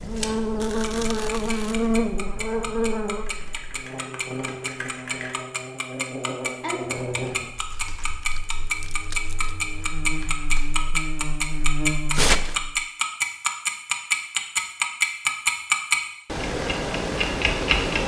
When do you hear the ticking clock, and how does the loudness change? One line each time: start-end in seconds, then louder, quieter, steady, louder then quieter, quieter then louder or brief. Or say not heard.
0.0-18.0 louder.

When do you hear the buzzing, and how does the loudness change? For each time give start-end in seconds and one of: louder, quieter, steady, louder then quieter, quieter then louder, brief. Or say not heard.
0.0-12.8 quieter then louder.